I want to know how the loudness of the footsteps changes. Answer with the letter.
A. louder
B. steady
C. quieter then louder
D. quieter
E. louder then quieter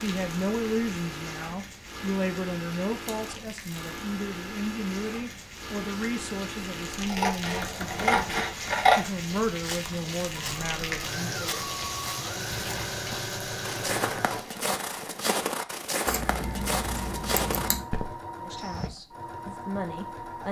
A.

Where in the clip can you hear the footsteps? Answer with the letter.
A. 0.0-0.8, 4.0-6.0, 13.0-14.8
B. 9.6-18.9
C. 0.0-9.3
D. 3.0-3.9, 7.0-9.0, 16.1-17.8
B.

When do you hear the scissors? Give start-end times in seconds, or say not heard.
3.0-3.9, 7.0-9.0, 16.1-17.8.